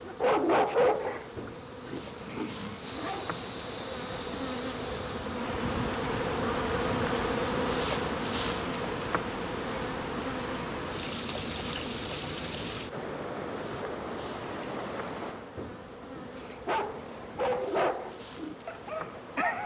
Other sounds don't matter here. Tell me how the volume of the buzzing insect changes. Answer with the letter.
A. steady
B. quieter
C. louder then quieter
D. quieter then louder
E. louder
C.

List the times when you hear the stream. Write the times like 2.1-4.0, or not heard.
0.0-19.6.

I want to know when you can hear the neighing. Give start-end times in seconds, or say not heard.
1.3-2.7, 15.6-16.6.